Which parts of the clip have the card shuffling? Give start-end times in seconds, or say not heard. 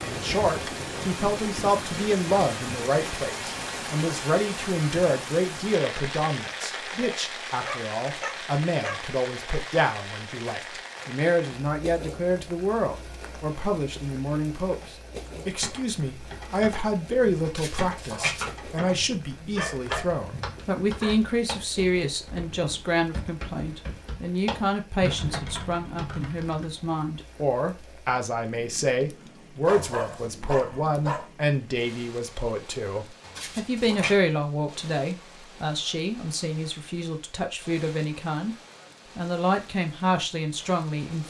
17.4-18.5, 33.2-34.1.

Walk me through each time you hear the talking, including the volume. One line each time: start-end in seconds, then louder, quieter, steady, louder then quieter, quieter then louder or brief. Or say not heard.
0.0-38.5 steady
39.1-41.2 brief.